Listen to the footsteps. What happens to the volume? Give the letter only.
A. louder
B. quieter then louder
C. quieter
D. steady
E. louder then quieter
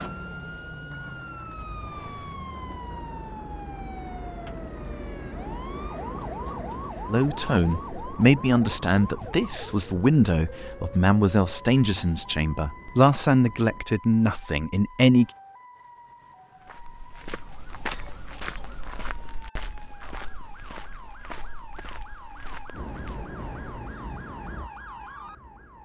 C.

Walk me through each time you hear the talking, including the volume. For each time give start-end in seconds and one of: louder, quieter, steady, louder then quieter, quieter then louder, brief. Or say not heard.
7.0-15.3 steady.